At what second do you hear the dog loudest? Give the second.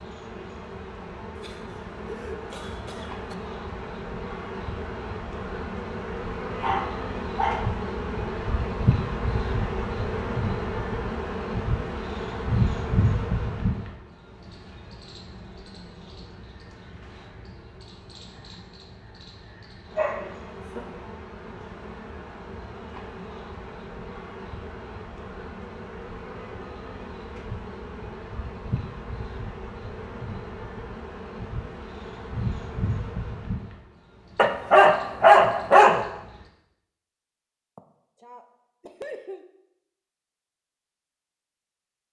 35 s.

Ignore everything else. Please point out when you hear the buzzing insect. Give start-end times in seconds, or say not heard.
0.0-36.5.